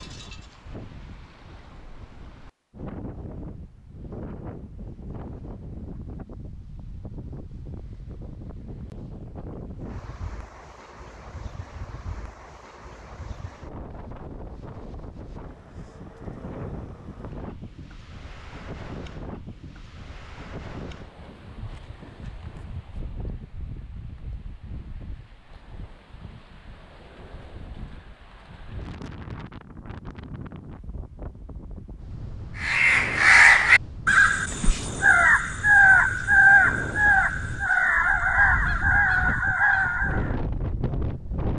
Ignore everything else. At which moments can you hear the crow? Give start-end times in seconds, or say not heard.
32.5-40.4.